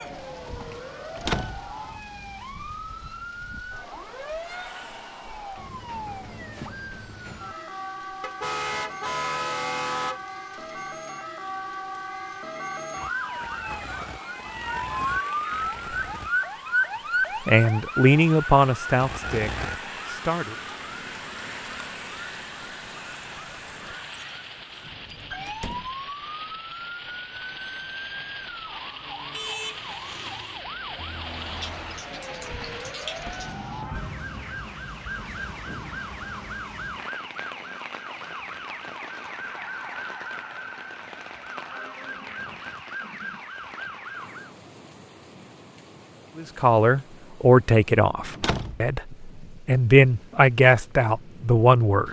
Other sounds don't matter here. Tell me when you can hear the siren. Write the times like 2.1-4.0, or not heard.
0.0-44.5.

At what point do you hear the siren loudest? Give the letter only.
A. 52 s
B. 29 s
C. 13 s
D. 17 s
D.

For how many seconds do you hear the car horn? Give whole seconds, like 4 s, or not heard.
2 s.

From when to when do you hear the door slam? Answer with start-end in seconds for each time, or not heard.
1.1-1.8, 25.4-25.9, 48.3-48.9.